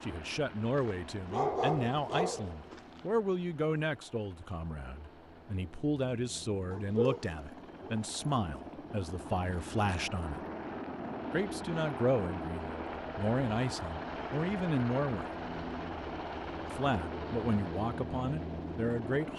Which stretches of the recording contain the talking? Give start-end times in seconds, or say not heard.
0.0-10.4, 11.3-15.2, 16.7-19.3.